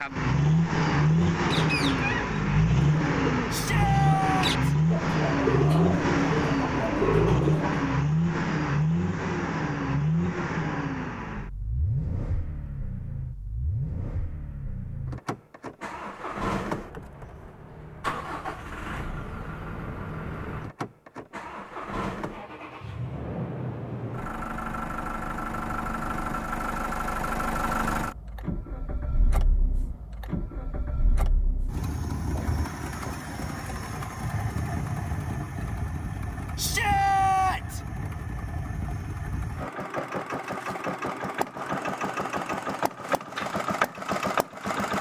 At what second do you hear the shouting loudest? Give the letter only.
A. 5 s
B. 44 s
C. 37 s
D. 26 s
C.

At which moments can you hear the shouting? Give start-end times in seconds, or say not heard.
3.5-4.5, 36.5-37.8.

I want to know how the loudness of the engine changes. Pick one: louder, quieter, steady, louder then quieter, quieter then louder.
quieter.